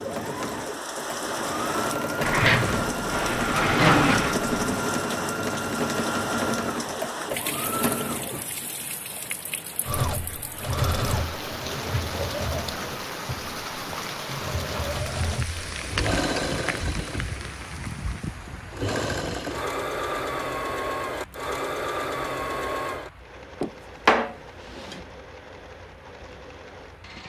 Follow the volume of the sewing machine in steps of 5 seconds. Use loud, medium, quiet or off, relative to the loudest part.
loud, loud, loud, loud, loud, quiet.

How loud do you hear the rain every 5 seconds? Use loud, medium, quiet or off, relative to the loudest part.
loud, loud, loud, loud, quiet, quiet.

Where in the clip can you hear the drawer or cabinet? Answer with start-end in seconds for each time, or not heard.
2.2-4.8, 23.6-25.0.